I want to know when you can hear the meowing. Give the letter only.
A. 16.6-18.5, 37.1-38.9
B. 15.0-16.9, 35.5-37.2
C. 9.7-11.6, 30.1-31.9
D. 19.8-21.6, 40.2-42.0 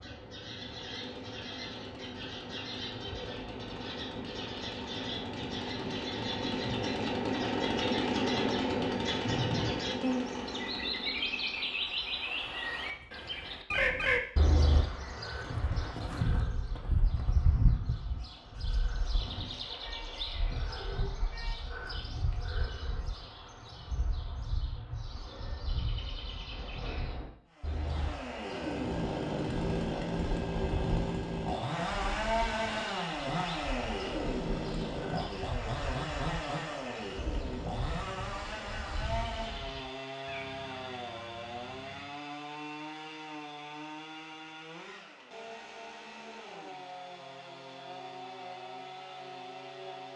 D.